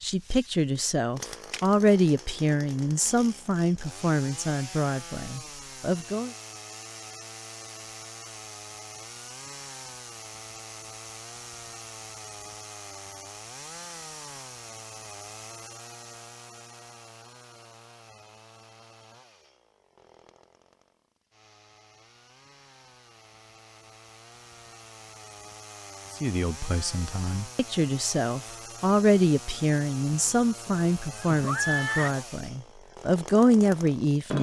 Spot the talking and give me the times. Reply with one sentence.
The talking can be heard from 0.0 to 6.3 s and from 26.2 to 34.3 s.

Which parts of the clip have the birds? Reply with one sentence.
The birds can't be heard in this clip.